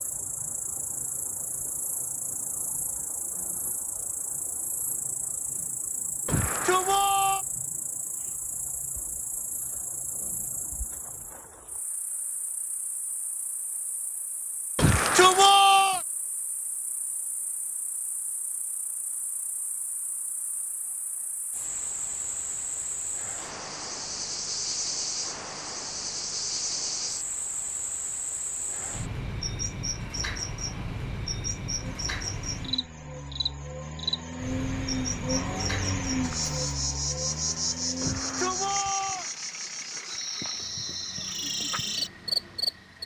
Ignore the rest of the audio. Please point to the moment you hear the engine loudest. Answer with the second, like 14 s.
36 s.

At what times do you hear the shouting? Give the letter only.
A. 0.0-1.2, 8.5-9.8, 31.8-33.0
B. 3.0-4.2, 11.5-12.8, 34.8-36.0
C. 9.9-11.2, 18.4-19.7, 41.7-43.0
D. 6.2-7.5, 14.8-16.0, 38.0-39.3
D.